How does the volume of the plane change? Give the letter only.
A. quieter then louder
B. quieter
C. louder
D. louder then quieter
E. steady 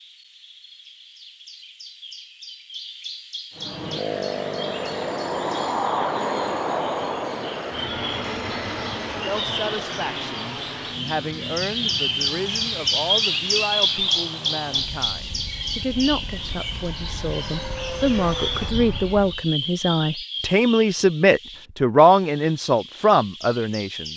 A.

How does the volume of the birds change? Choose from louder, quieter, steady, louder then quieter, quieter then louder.
louder then quieter.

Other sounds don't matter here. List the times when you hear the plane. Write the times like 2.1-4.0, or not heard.
3.5-19.4.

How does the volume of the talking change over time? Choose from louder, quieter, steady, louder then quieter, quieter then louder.
louder.